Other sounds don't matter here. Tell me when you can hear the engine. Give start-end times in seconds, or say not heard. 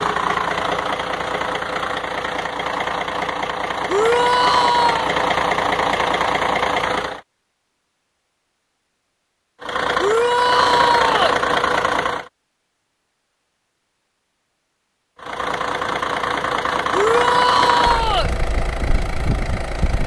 0.0-7.2, 9.6-12.3, 15.2-20.0.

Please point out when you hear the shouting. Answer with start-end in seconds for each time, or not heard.
3.9-5.2, 9.9-11.4, 16.9-18.3.